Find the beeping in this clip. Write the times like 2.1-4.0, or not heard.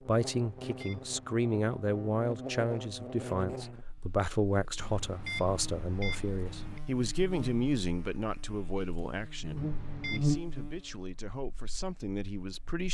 0.3-1.3, 4.8-6.8, 9.6-10.3.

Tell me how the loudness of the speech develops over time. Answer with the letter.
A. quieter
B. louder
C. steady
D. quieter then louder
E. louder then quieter
A.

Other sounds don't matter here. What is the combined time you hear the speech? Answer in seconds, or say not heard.
13 s.